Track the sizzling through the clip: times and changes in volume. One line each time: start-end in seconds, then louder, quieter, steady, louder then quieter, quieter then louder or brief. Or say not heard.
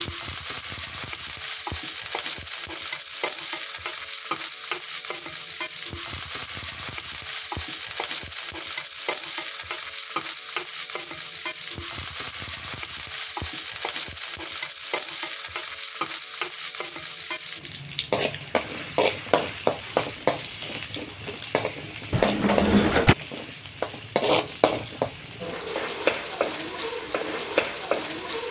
0.0-28.4 steady.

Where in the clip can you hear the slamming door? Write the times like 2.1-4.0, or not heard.
22.1-23.1.